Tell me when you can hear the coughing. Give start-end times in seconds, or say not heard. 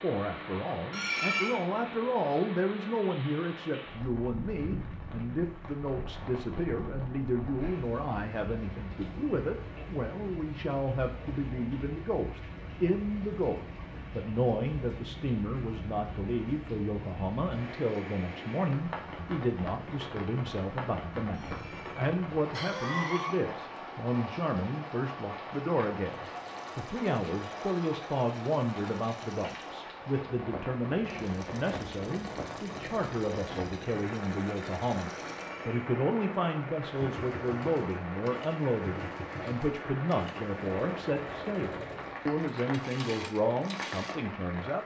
0.9-1.6, 21.4-23.4, 35.3-36.0.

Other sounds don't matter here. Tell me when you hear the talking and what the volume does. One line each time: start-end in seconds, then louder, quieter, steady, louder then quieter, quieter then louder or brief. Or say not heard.
0.0-44.8 steady.